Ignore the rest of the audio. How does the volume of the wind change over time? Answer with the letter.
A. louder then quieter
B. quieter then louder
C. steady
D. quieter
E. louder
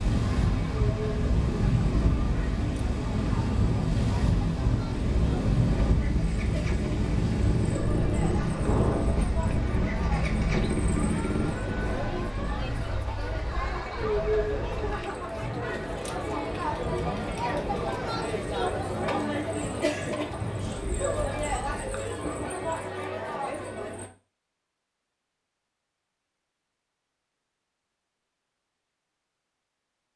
D.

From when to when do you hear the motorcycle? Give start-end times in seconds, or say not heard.
0.0-11.6.